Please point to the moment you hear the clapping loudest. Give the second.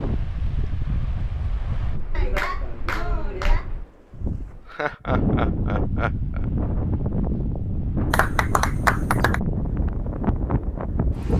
9 s.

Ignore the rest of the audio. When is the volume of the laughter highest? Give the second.
5 s.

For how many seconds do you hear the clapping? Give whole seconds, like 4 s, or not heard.
3 s.